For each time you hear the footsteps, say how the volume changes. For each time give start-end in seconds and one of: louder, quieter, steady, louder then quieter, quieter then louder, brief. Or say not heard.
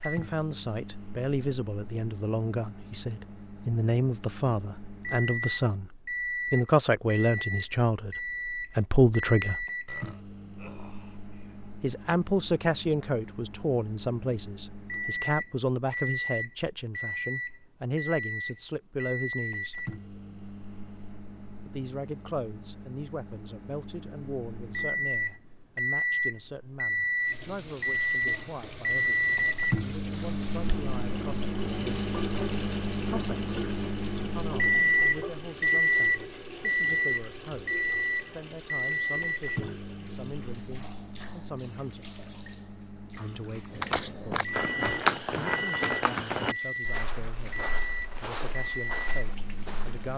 43.7-50.1 quieter.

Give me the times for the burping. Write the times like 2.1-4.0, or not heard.
9.8-11.7.